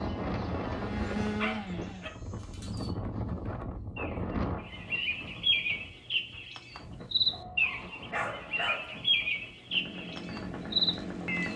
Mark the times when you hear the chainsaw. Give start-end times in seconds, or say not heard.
0.0-2.0, 9.7-11.5.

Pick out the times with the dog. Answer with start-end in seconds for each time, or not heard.
1.4-2.9, 7.3-9.0.